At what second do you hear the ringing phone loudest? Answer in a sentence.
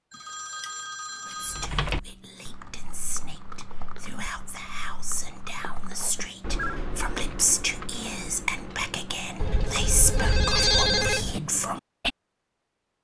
The loudest moment of the ringing phone is at 11 seconds.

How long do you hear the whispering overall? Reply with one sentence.
The whispering can be heard for 11 seconds in total.